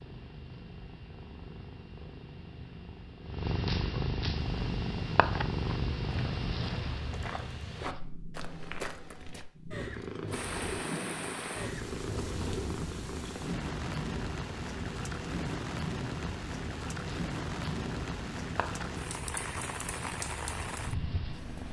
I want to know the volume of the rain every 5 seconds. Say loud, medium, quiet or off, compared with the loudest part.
off, off, loud, loud, loud.